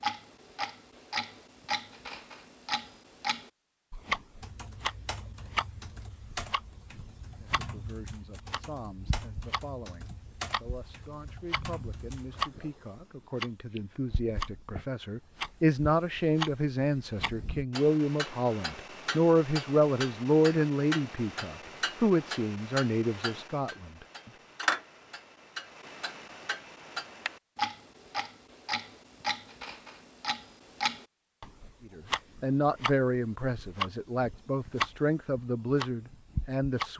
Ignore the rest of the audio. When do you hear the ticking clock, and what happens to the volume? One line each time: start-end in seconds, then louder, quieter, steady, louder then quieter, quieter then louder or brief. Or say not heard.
0.0-36.9 steady.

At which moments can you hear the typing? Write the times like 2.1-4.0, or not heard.
4.4-12.4.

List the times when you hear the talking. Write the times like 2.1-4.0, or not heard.
7.3-24.1, 31.9-36.9.